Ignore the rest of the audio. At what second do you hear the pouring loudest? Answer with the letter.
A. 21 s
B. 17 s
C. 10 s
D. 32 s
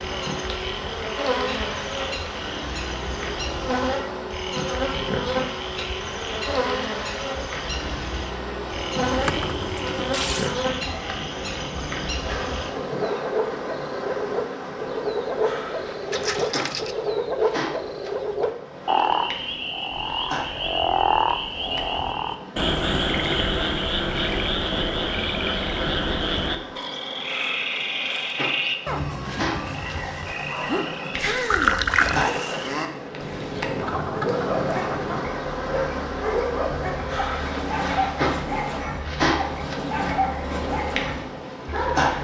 D.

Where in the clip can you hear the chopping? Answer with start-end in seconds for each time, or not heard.
not heard.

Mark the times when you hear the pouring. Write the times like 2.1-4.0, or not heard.
9.1-10.6, 16.1-16.9, 31.5-32.3.